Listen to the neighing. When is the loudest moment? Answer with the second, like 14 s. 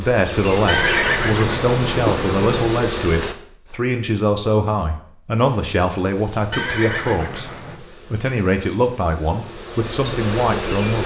1 s.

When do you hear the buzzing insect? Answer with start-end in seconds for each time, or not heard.
0.0-3.4, 5.3-11.0.